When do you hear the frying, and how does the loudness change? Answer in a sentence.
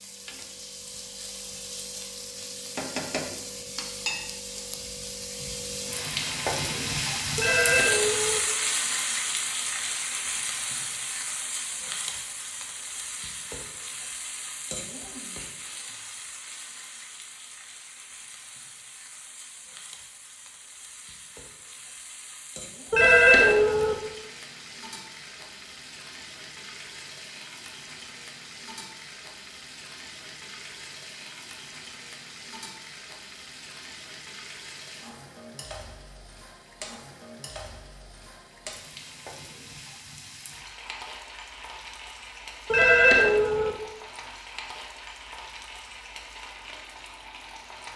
You can hear the frying from 0.0 to 47.9 s, getting quieter.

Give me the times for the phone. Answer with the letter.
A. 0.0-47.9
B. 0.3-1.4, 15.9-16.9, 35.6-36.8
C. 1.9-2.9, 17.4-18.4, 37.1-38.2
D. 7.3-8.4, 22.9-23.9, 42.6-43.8
D.